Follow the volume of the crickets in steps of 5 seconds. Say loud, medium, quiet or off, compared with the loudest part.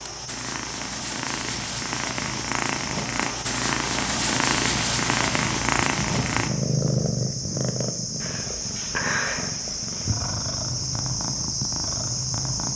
medium, loud, loud.